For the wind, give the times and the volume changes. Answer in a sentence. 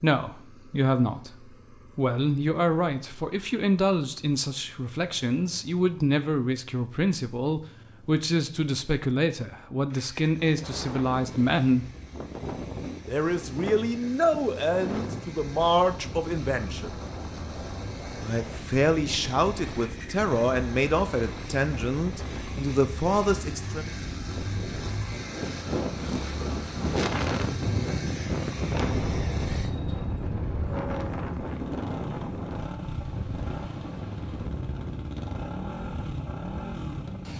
You can hear the wind from 10.4 to 37.3 s, getting louder then quieter.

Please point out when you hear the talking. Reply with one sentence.
The talking can be heard from 0.0 to 11.9 s, from 13.1 to 17.0 s and from 18.2 to 23.9 s.